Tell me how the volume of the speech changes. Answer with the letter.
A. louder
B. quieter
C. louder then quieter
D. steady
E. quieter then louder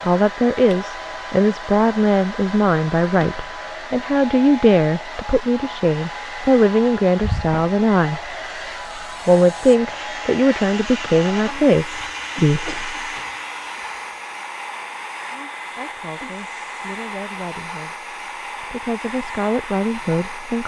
B.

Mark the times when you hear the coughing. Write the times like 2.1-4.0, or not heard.
7.2-7.7, 11.9-13.3.